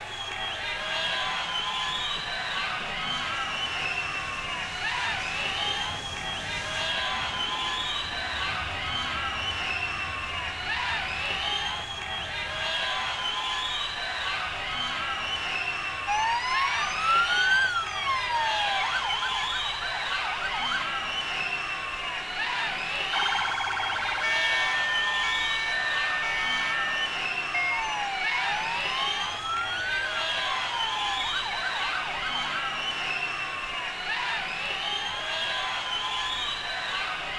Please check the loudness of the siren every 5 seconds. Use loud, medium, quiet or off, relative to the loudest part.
off, off, off, loud, loud, loud, medium, off.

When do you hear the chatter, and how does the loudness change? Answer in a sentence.
You can hear the chatter from 0.0 to 37.3 s, at a steady volume.